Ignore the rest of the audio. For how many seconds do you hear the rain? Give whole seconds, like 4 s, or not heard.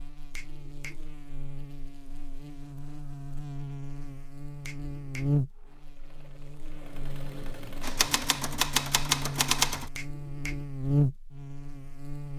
not heard.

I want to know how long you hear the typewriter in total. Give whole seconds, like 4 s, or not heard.
2 s.